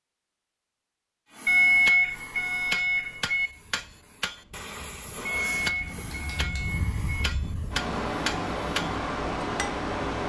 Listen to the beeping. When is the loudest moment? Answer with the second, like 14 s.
2 s.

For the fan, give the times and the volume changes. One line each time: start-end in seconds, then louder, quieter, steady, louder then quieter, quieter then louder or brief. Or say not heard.
3.4-10.2 louder.